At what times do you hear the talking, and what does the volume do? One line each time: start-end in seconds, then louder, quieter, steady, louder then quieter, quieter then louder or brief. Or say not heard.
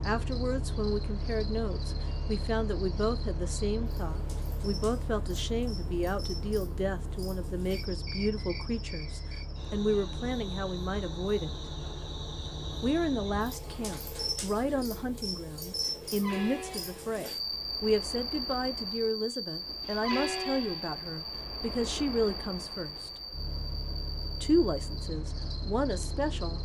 0.0-11.6 steady
12.8-23.2 steady
24.4-26.6 brief.